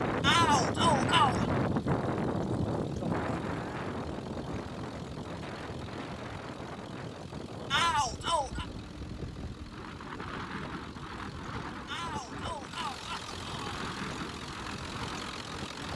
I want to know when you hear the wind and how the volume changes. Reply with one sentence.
You can hear the wind from 0.0 to 15.9 s, getting quieter.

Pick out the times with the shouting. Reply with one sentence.
The shouting can be heard from 0.2 to 1.5 s, from 7.7 to 8.7 s and from 11.8 to 13.8 s.